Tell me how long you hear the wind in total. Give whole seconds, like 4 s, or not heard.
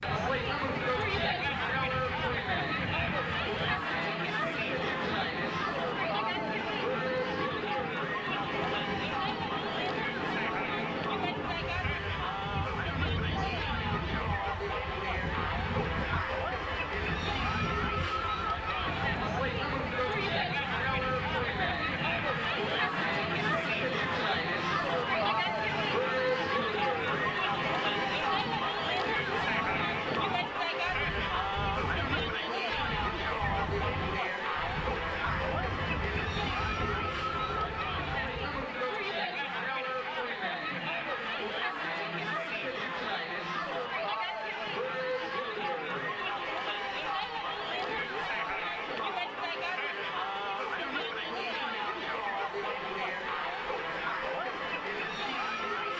39 s.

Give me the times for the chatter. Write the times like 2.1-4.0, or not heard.
0.0-55.9.